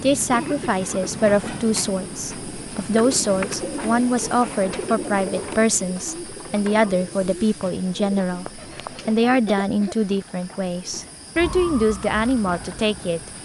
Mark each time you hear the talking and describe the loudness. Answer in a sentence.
The talking can be heard from 0.0 to 13.2 s, at a steady volume.